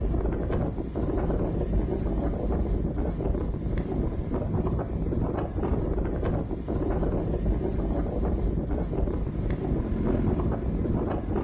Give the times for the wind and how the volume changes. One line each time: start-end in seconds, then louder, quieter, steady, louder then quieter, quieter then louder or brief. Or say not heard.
0.0-11.3 steady.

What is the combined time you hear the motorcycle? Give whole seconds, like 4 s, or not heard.
2 s.